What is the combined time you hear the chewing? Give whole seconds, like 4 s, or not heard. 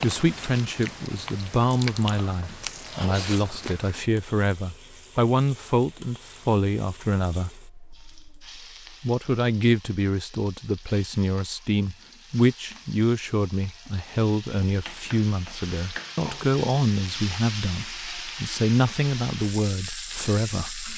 4 s.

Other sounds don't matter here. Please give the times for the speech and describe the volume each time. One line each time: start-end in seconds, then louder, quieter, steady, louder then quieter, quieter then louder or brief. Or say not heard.
0.0-20.9 steady.